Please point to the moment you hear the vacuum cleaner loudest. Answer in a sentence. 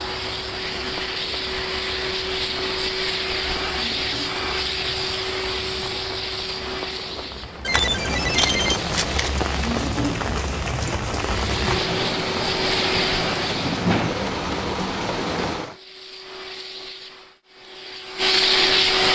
The volume of the vacuum cleaner peaks at 19 seconds.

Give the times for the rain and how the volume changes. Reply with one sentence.
The rain can be heard from 0.0 to 15.8 s, getting louder.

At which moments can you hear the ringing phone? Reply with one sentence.
You can hear the ringing phone from 7.6 to 9.4 s.